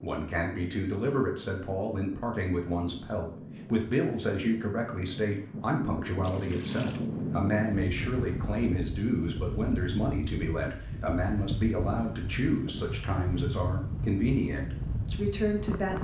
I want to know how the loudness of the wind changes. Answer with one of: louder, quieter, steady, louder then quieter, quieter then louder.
louder.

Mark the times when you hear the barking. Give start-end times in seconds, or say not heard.
not heard.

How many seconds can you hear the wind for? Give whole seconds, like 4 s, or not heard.
16 s.